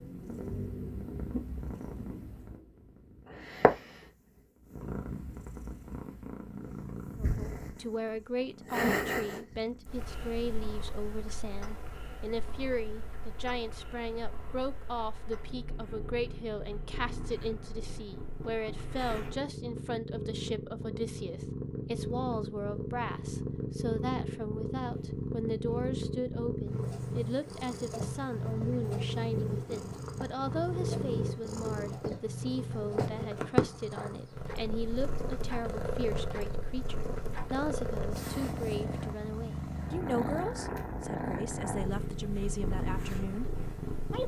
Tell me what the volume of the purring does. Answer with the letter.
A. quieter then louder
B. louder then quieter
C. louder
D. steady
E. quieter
A.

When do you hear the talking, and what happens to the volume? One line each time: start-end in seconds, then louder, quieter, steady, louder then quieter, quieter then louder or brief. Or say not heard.
7.2-44.2 steady.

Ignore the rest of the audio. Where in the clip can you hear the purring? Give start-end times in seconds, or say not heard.
0.0-44.2.